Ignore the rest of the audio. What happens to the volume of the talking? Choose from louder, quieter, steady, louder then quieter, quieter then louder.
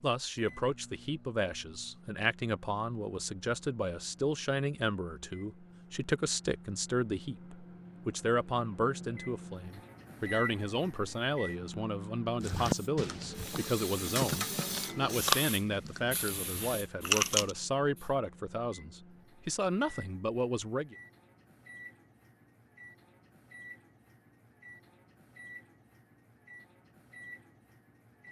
steady.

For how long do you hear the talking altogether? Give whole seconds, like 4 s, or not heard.
21 s.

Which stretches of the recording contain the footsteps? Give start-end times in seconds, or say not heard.
not heard.